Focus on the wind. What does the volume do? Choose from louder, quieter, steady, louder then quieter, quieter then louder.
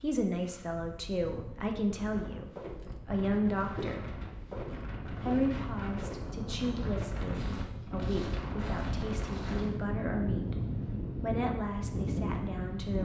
louder.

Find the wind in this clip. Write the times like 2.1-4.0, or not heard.
0.0-13.0.